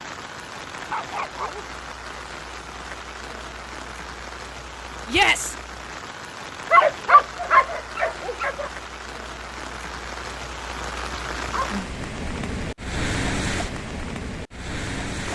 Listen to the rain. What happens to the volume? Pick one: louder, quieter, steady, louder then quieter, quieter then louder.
louder.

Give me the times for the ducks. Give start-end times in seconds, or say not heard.
not heard.